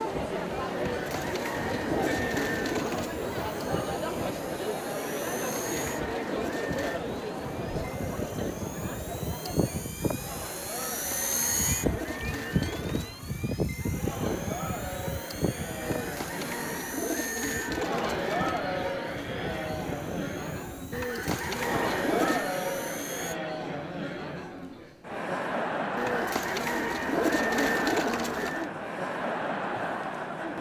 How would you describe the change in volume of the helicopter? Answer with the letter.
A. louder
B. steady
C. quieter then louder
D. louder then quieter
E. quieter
D.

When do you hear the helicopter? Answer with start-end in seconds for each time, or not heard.
0.0-23.4.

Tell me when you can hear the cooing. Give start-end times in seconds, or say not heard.
0.8-3.1, 5.3-7.0, 10.7-13.1, 15.8-18.6, 20.9-22.5, 25.9-28.7.